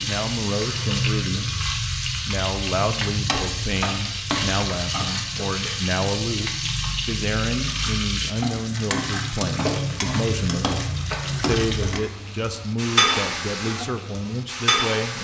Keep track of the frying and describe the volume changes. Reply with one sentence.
The volume of the frying stays about the same.